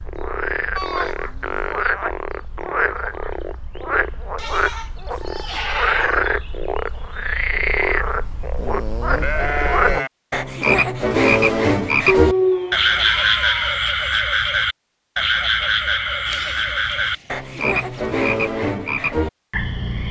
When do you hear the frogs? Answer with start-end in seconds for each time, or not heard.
0.0-20.0.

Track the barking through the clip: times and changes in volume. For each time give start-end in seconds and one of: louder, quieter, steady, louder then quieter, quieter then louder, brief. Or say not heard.
not heard.